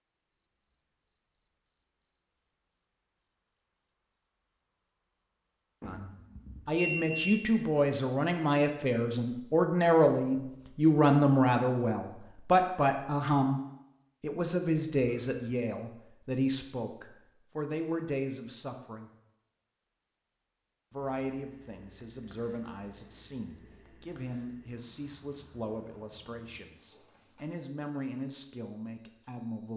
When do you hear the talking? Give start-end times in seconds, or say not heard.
5.8-13.6, 14.2-19.1, 20.9-29.7.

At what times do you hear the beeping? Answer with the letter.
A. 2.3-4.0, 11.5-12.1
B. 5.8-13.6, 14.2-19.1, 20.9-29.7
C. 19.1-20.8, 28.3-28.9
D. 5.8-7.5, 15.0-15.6
D.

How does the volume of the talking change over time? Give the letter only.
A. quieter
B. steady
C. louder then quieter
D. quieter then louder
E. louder
A.